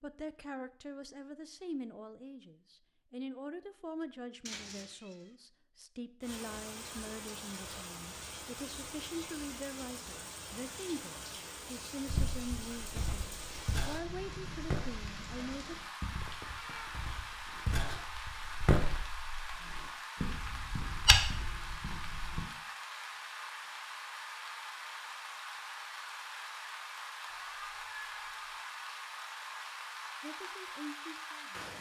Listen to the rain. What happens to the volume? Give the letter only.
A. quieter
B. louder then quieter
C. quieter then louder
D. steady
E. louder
D.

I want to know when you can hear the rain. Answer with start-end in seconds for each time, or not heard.
6.2-31.7.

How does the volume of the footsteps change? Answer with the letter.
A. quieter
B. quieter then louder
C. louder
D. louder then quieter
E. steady
C.